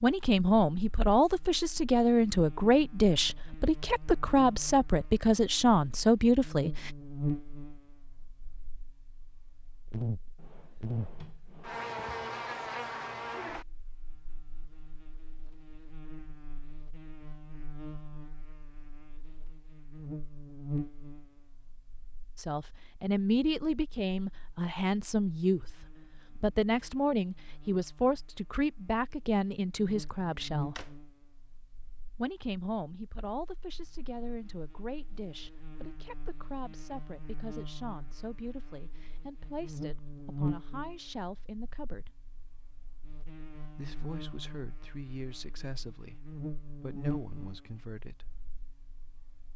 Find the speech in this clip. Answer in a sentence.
You can hear the speech from 0.0 to 6.9 s, from 22.4 to 30.8 s, from 32.1 to 42.1 s and from 43.8 to 48.2 s.